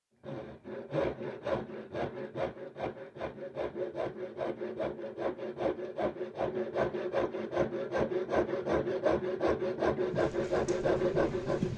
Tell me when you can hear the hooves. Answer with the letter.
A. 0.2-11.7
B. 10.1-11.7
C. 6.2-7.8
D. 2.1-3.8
B.